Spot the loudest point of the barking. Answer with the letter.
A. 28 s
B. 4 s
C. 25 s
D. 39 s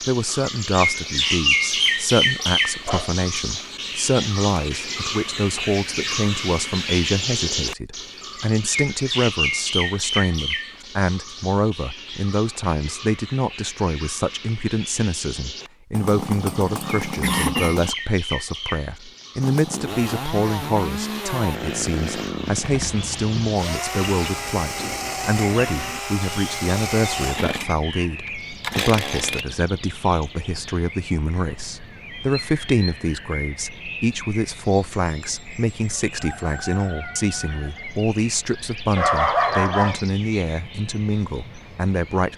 D.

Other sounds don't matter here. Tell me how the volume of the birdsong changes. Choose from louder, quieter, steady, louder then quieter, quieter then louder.
quieter.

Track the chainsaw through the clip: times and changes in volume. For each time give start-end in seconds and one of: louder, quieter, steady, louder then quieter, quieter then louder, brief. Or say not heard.
15.9-17.9 brief
19.4-29.4 steady.